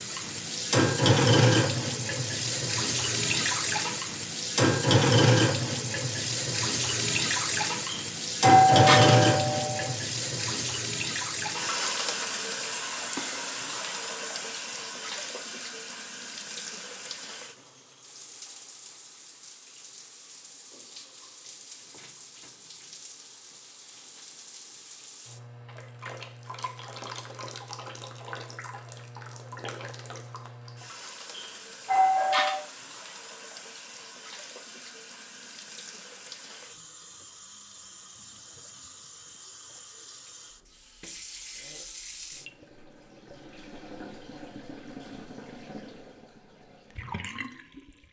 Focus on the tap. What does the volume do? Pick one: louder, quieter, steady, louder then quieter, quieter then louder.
quieter.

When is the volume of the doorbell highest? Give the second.
9 s.